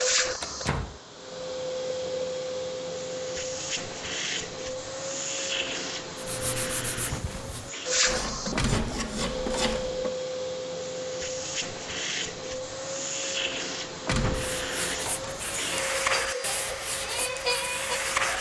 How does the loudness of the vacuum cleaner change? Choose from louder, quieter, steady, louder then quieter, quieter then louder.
steady.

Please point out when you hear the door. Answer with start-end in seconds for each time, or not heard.
0.4-1.0, 8.6-9.9, 14.1-15.4.